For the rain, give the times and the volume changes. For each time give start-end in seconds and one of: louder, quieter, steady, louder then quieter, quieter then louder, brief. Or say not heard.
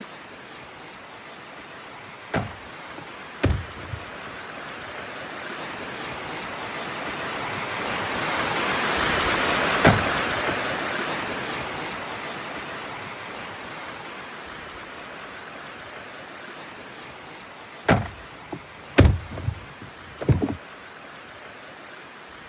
0.0-22.4 louder then quieter.